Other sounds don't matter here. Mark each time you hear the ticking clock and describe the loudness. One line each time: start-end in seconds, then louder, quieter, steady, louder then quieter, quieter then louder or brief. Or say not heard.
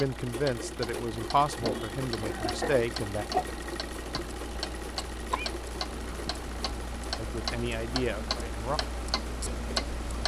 0.0-10.2 louder.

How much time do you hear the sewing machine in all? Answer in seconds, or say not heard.
10 s.